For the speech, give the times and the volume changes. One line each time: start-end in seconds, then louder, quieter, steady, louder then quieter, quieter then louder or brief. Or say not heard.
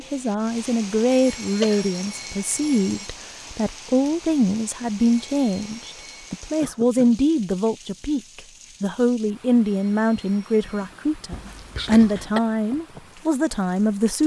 0.0-14.2 steady.